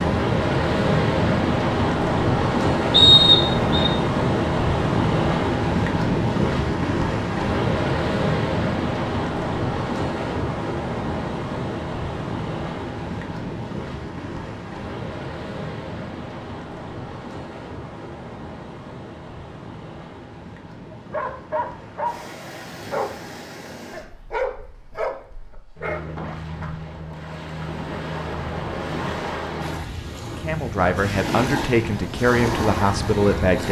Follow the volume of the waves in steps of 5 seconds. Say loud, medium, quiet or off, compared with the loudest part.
loud, loud, medium, quiet, quiet, medium, medium.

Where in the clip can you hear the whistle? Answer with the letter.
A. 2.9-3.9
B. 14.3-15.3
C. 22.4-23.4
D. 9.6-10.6
A.